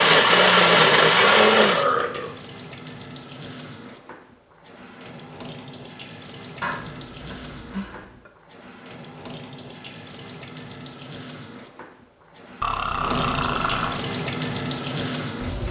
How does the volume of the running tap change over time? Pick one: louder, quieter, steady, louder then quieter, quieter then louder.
louder.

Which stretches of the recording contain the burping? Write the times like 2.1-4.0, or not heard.
1.6-2.4, 6.6-8.3, 12.6-14.1.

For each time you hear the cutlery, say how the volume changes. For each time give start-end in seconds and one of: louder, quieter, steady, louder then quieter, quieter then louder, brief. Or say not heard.
not heard.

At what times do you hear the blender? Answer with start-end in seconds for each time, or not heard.
0.0-1.9.